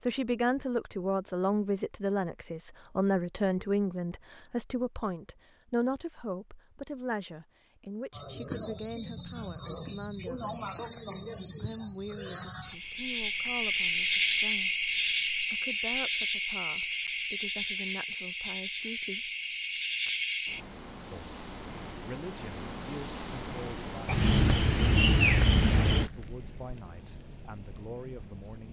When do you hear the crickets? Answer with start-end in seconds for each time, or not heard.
8.1-28.6.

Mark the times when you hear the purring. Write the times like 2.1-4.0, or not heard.
not heard.